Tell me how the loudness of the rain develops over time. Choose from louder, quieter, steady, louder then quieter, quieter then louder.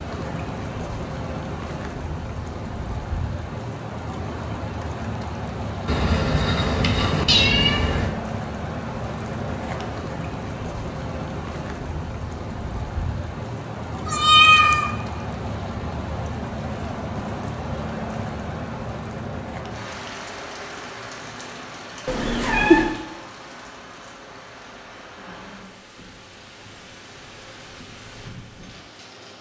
quieter.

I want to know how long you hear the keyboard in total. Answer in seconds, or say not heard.
not heard.